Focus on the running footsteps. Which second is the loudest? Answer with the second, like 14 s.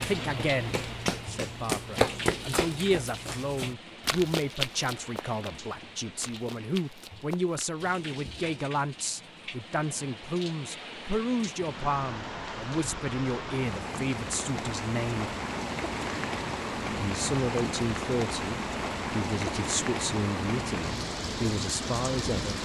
2 s.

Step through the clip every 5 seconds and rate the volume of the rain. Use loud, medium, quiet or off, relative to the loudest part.
medium, quiet, medium, loud, loud.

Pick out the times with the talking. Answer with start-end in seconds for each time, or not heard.
0.0-15.3, 16.9-22.6.